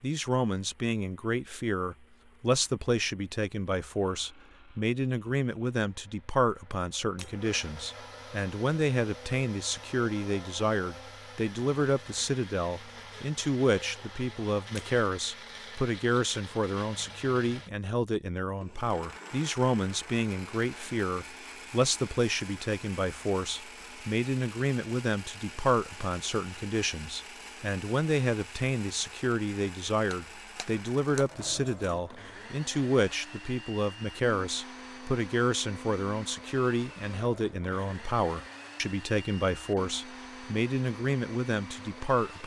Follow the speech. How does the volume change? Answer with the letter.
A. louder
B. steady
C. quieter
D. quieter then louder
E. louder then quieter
B.